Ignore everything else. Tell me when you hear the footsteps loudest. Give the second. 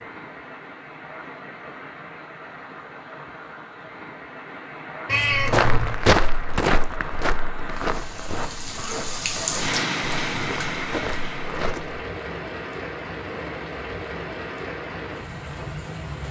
6 s.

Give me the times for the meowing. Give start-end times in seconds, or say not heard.
5.0-6.0.